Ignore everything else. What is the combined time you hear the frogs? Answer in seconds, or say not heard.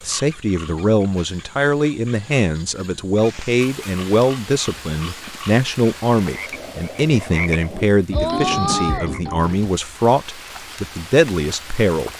10 s.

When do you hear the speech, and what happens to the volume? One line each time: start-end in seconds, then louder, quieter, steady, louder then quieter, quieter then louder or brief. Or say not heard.
0.0-12.1 steady.